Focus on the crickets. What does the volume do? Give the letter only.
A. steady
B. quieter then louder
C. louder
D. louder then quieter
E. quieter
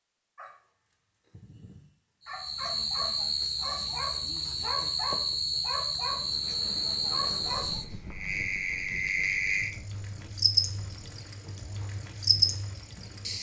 A.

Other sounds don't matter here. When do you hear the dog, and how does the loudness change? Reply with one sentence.
The dog can be heard from 0.3 to 6.2 s, getting louder; and briefly from 7.0 to 7.7 s.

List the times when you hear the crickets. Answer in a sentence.
You can hear the crickets from 2.2 to 13.3 s.